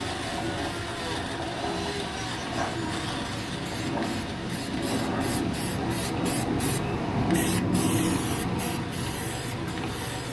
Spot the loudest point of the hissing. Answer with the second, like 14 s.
8 s.